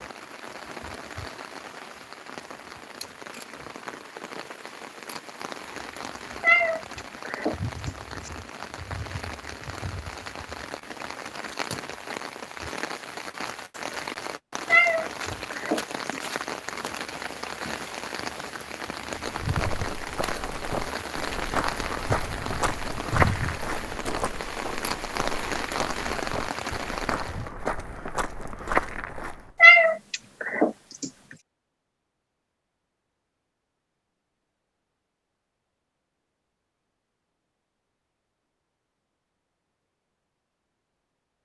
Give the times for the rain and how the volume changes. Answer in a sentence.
You can hear the rain from 0.0 to 27.5 s, getting louder.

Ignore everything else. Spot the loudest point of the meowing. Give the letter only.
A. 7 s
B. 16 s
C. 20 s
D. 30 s
D.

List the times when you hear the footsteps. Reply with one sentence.
You can hear the footsteps from 19.5 to 29.6 s.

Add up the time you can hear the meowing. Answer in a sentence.
The meowing can be heard for 5 seconds in total.